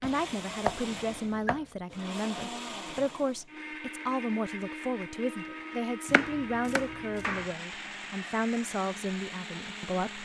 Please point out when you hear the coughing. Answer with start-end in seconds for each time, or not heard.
not heard.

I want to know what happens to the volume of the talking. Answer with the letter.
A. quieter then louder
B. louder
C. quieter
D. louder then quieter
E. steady
E.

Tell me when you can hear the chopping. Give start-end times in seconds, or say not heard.
0.0-1.6, 6.0-7.5.